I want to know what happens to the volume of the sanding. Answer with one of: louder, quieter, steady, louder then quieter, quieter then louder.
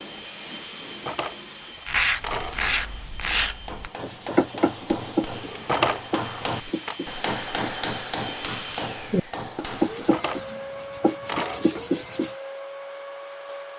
quieter then louder.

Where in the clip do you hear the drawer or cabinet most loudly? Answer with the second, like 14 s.
6 s.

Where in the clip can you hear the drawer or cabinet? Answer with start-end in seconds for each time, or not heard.
0.8-2.7, 5.3-7.0, 9.9-11.9.